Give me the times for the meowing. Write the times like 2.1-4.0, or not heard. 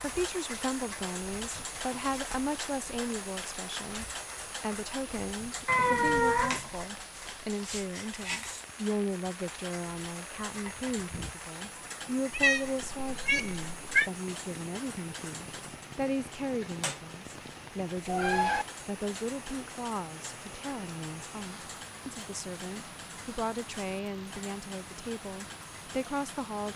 5.7-6.7, 12.3-14.1, 18.1-18.6.